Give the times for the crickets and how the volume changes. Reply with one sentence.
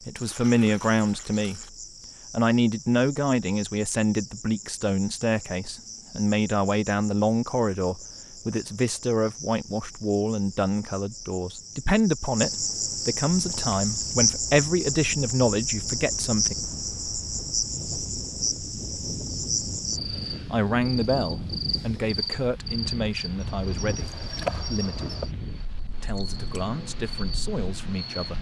The crickets can be heard from 0.0 to 28.3 s, getting louder then quieter.